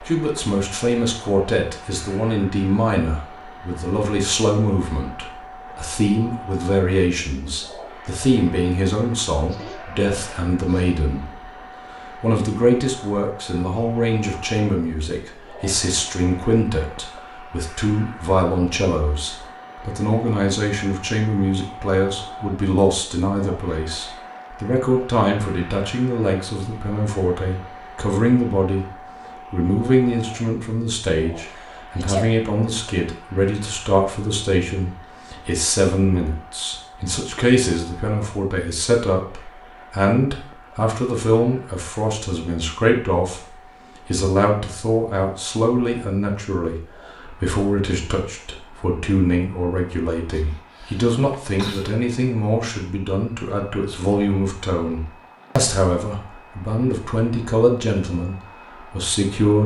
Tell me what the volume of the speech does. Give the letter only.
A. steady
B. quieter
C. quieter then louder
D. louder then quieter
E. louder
A.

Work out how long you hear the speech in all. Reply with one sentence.
The speech can be heard for 59 seconds in total.